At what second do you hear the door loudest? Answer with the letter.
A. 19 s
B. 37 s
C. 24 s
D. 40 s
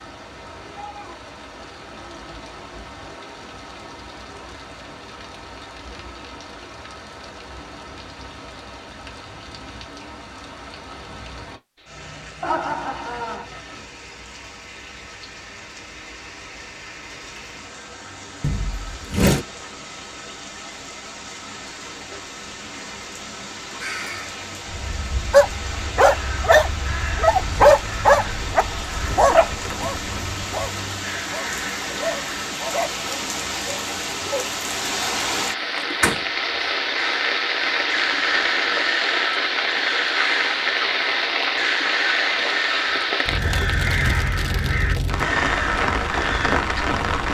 A.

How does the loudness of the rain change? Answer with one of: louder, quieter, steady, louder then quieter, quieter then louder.
louder.